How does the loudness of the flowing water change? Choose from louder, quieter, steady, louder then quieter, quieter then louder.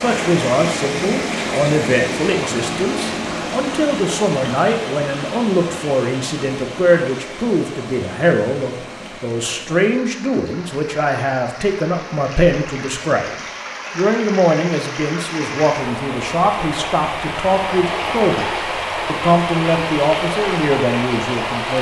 quieter then louder.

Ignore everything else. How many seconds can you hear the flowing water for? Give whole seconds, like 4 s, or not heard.
22 s.